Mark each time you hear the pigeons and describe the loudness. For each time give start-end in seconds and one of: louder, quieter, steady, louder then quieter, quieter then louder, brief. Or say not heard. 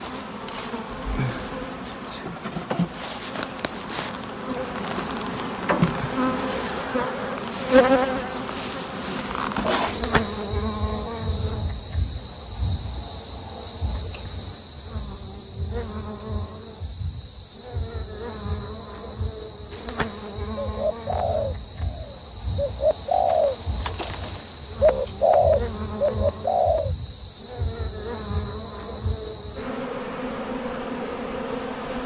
20.6-26.9 louder.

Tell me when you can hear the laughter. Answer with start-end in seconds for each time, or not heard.
6.3-7.5.